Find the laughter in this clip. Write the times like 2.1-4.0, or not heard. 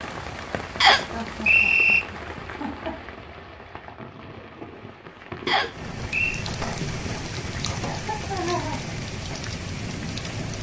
1.1-3.0, 7.9-8.8.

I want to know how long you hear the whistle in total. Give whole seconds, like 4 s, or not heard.
2 s.